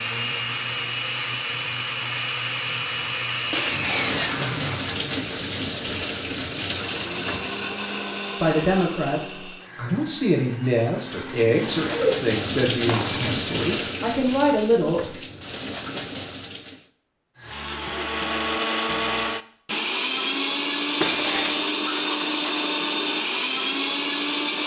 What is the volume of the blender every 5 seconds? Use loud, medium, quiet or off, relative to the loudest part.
loud, medium, quiet, loud, loud.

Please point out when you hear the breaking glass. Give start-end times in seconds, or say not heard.
3.5-4.5, 12.8-13.4, 21.0-21.6.